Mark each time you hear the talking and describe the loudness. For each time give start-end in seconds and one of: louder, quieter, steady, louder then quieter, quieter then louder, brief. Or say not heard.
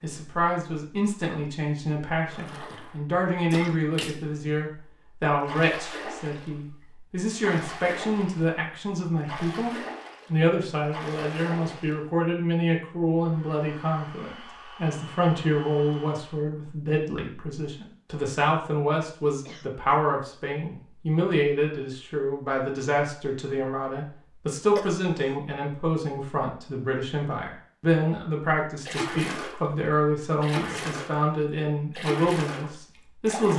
0.0-33.5 steady.